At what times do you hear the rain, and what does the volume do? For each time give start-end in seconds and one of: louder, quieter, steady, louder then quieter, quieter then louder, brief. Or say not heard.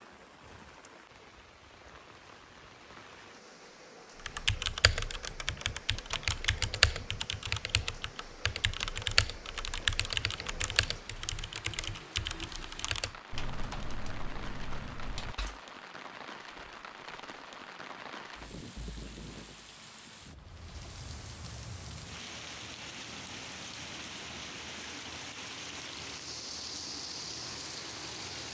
0.0-28.4 louder.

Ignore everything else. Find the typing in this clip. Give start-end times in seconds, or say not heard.
4.2-15.6.